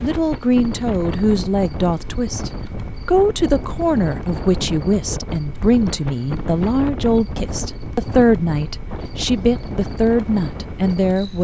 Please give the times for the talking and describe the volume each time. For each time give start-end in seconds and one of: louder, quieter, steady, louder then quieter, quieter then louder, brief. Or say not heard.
0.0-11.4 steady.